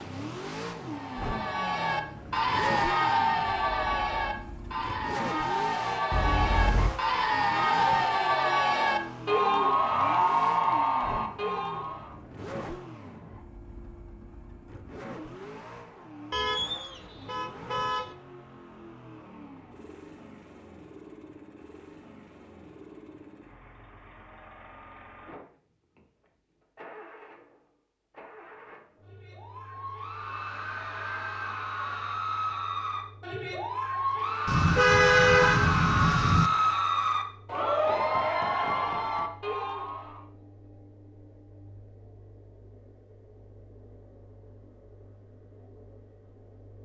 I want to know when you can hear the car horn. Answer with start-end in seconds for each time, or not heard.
6.1-6.9, 16.3-18.1, 34.5-36.5.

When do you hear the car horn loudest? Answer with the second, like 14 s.
35 s.